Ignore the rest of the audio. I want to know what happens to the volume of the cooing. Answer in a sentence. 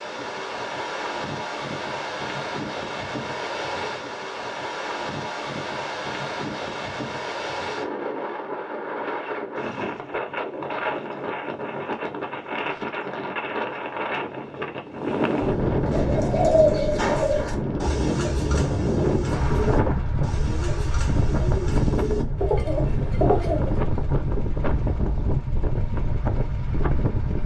The loudness of the cooing goes down, then up.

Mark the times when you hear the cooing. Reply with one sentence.
You can hear the cooing from 15.8 to 23.8 s.